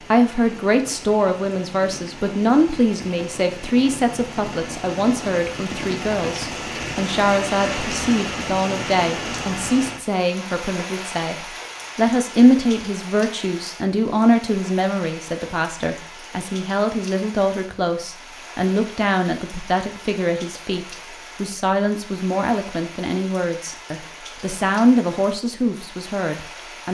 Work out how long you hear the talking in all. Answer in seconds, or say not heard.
27 s.